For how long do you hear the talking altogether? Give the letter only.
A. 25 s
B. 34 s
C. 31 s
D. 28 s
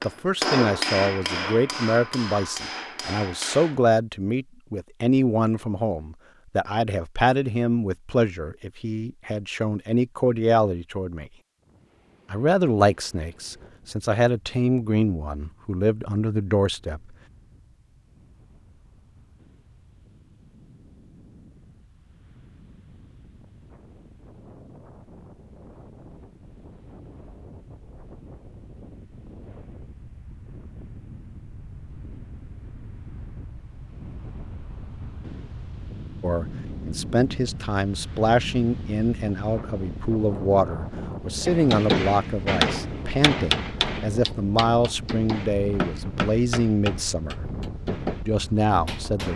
D.